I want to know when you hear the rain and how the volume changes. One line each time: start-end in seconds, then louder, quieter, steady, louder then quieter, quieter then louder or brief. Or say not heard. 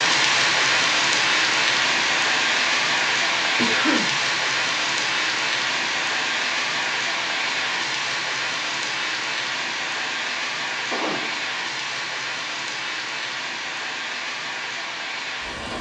0.0-15.7 quieter.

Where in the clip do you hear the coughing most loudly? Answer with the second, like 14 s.
4 s.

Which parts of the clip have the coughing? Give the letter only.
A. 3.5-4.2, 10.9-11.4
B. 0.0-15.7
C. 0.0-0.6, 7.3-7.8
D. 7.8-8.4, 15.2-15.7
A.